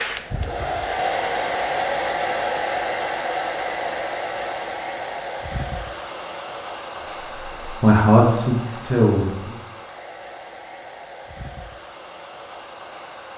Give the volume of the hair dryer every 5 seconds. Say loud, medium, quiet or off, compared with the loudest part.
loud, medium, quiet.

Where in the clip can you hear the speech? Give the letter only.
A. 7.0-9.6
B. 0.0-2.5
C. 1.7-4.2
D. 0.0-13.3
A.